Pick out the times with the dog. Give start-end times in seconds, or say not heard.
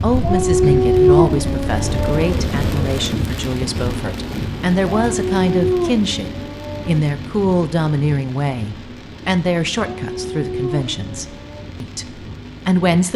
0.2-2.5, 5.0-7.1, 9.8-11.7.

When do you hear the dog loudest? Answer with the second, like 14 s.
1 s.